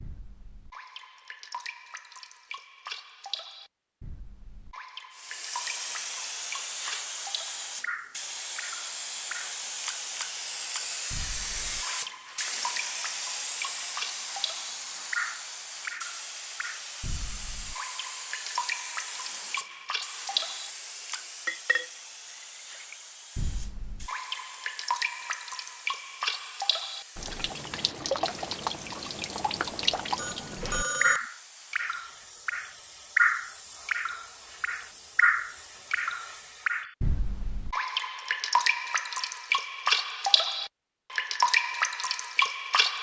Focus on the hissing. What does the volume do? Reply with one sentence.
The loudness of the hissing goes down.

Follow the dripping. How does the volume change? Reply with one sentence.
The volume of the dripping goes up.